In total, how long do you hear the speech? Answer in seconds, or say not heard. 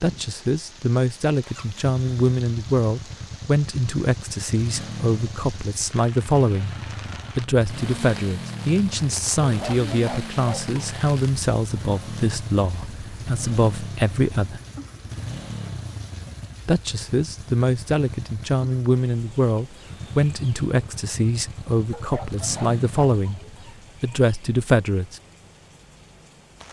22 s.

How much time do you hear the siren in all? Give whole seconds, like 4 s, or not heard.
not heard.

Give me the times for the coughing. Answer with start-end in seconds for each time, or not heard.
not heard.